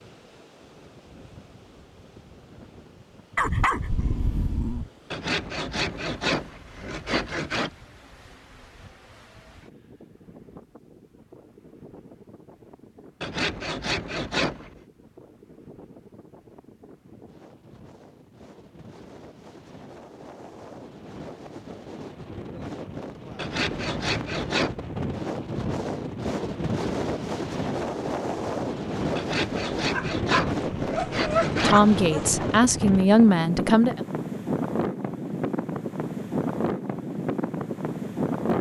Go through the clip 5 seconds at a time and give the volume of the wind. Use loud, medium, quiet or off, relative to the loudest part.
quiet, quiet, quiet, quiet, medium, loud, loud, loud.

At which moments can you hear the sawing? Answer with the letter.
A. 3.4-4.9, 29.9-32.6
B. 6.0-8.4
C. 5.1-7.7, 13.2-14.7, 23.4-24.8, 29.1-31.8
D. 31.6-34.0
C.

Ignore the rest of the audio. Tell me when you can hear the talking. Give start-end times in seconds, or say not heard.
31.6-34.0.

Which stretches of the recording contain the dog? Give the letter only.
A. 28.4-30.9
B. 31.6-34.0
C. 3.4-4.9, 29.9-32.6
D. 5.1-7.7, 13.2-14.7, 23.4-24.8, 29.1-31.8
C.